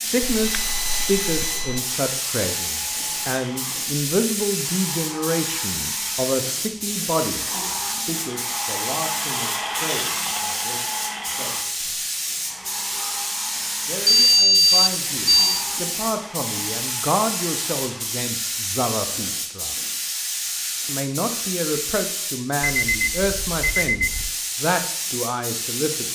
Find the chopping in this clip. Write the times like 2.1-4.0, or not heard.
not heard.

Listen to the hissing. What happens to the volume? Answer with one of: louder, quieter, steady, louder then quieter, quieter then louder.
steady.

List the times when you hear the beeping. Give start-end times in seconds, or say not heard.
0.2-1.8, 14.1-15.7, 22.8-24.3.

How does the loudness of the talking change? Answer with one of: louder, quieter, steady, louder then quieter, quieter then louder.
quieter then louder.